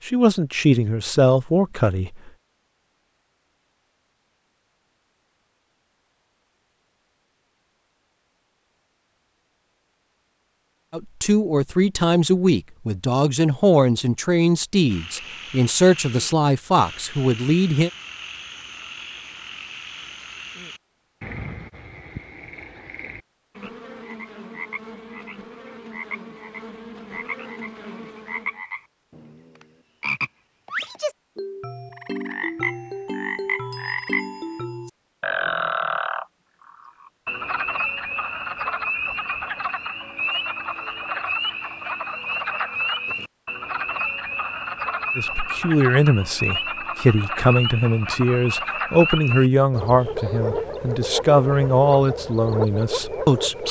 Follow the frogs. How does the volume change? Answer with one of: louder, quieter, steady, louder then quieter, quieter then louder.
louder.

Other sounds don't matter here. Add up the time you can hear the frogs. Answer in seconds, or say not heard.
39 s.